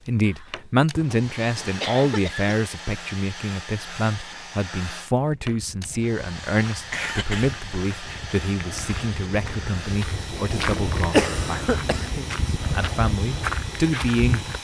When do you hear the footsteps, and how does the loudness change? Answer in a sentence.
The footsteps can be heard from 5.2 to 14.5 s, getting louder.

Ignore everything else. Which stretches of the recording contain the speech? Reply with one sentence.
You can hear the speech from 0.1 to 11.8 s and from 12.7 to 14.4 s.